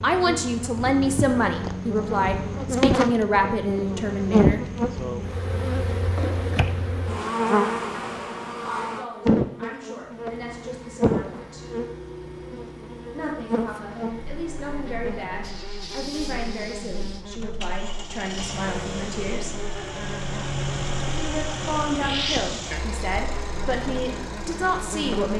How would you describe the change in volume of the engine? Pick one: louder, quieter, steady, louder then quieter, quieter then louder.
louder.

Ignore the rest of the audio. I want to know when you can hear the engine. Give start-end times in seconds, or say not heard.
9.9-25.3.